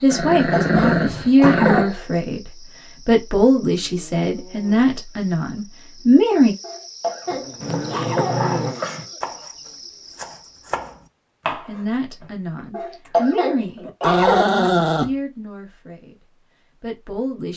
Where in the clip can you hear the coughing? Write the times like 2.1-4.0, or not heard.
0.1-2.0, 6.6-8.5, 12.7-14.5.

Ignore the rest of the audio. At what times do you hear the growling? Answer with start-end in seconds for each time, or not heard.
0.1-1.9, 7.6-9.1, 13.8-15.1.